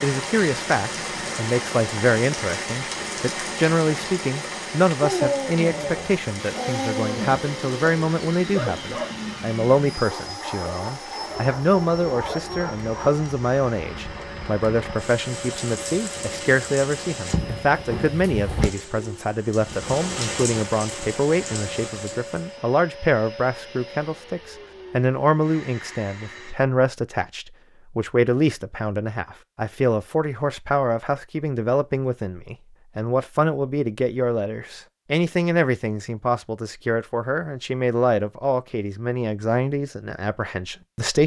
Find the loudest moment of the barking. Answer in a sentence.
The loudest moment of the barking is at 5 seconds.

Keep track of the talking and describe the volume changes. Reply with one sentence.
The volume of the talking stays about the same.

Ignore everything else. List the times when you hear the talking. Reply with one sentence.
You can hear the talking from 0.0 to 41.2 s.